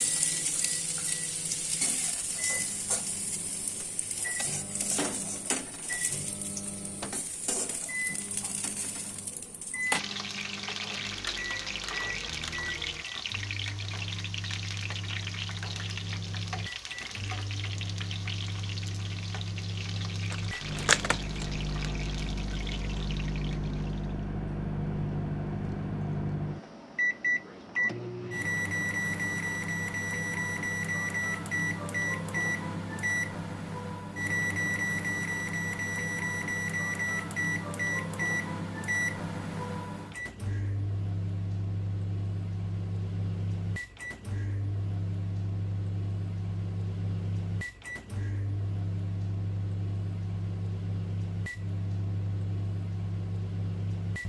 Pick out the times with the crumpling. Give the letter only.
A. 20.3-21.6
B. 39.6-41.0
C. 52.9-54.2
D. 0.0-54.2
A.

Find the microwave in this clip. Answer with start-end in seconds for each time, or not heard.
0.0-54.2.